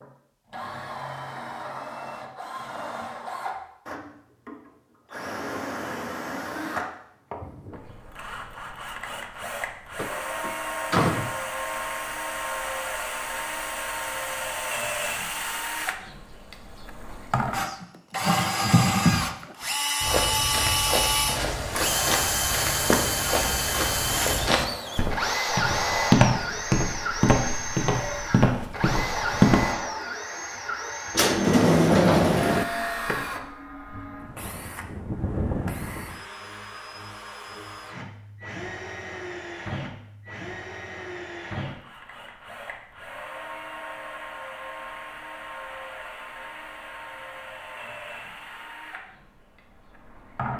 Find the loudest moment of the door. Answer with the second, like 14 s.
32 s.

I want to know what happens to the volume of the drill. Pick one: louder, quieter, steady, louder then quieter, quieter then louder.
louder then quieter.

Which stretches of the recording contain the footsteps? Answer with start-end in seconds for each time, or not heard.
20.0-29.8.